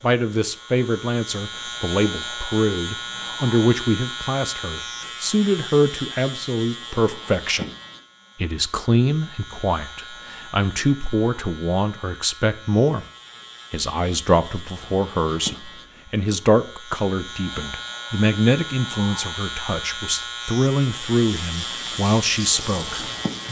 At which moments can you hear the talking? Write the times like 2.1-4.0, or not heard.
0.0-7.7, 8.3-13.1, 13.7-23.1.